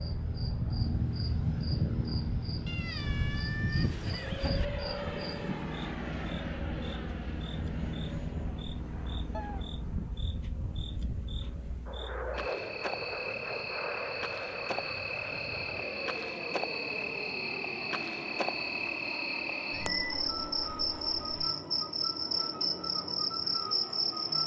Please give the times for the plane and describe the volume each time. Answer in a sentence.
The plane can be heard from 0.0 to 24.4 s, getting quieter.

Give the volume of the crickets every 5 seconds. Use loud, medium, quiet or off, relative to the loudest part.
quiet, quiet, medium, loud, loud.